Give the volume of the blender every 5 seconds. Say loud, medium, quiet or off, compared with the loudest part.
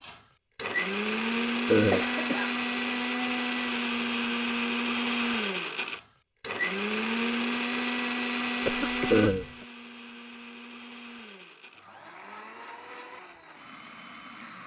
loud, loud, quiet.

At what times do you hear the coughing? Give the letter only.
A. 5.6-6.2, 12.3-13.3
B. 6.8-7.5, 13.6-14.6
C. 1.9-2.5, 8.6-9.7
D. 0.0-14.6
C.